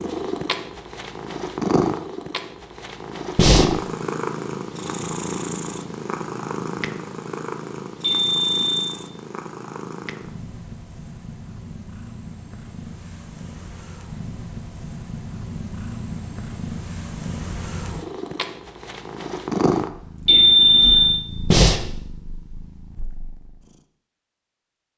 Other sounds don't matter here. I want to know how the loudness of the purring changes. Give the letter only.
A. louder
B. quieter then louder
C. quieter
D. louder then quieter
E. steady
B.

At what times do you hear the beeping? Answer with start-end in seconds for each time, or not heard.
8.0-8.9, 20.2-21.2.